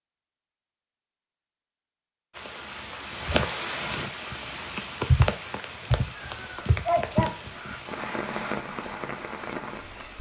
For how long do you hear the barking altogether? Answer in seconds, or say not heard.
2 s.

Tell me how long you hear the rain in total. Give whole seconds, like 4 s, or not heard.
8 s.